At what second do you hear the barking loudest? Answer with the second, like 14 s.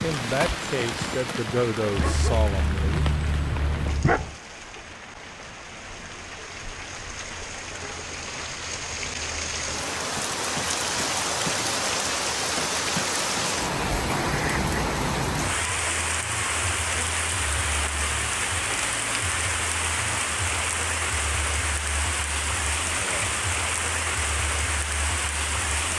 4 s.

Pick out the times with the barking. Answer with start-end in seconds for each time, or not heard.
1.9-4.3.